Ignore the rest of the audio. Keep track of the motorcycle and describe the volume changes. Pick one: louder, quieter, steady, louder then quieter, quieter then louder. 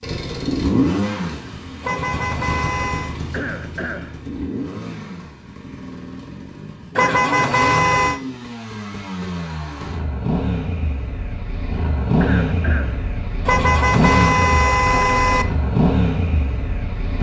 quieter then louder.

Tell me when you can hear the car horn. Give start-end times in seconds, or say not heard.
1.8-3.1, 7.0-8.2, 13.4-15.4.